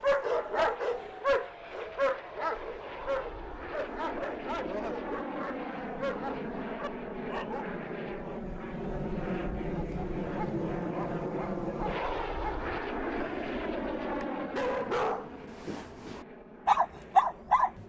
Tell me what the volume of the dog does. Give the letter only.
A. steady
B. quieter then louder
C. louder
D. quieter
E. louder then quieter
B.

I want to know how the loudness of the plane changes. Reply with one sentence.
The loudness of the plane goes up, then down.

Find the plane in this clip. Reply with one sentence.
The plane can be heard from 0.0 to 17.8 s.